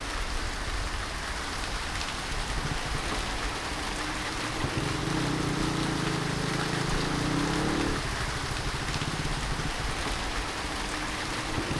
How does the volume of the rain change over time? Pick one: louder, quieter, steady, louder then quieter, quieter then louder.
steady.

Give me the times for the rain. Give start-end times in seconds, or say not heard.
0.0-11.7.